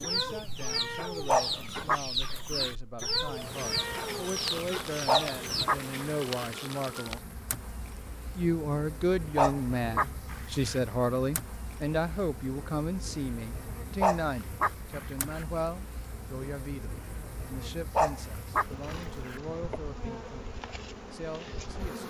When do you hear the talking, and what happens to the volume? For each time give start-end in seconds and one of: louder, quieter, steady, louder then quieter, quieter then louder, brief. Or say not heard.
0.0-7.2 louder
8.3-22.0 quieter.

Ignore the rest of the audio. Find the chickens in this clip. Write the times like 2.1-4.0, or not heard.
0.0-5.7.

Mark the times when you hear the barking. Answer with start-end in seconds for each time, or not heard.
1.2-2.7, 5.0-6.5, 9.3-10.8, 14.0-15.4, 17.9-19.4.